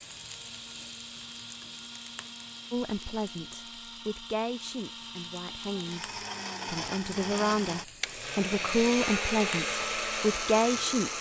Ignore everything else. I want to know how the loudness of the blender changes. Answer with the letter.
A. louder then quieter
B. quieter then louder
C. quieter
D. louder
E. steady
D.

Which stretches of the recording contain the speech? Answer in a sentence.
You can hear the speech from 2.7 to 11.1 s.